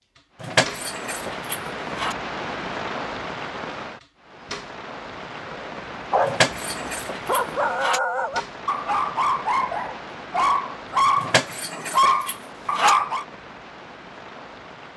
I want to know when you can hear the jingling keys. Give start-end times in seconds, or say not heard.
0.4-2.1, 6.2-8.0, 11.2-12.9.